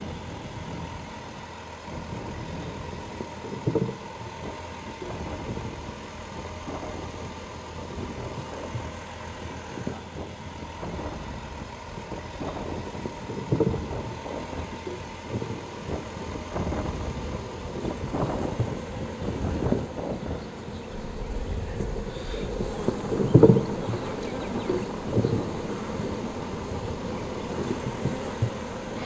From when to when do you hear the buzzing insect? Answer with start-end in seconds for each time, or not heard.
0.0-29.0.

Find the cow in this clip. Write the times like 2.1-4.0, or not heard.
not heard.